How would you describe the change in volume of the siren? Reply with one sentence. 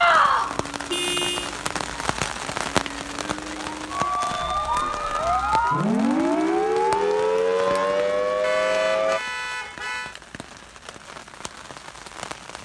The loudness of the siren goes up.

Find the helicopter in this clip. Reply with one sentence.
You can't hear the helicopter here.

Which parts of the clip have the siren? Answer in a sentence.
You can hear the siren from 0.0 to 9.2 s.